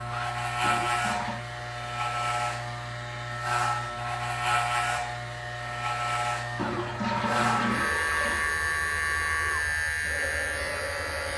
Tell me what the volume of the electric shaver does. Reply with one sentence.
The volume of the electric shaver stays about the same.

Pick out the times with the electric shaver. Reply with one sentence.
The electric shaver can be heard from 0.0 to 11.3 s.